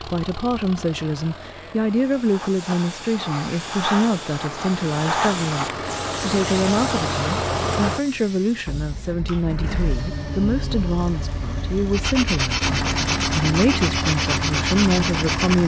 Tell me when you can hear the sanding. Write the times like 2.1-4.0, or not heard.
11.9-15.6.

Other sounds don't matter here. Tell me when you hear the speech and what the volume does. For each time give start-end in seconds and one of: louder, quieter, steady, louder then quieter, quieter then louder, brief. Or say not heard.
0.0-15.6 steady.